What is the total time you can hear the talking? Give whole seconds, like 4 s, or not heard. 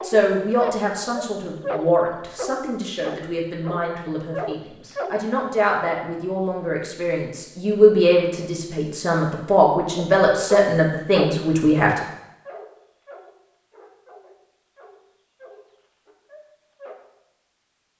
12 s.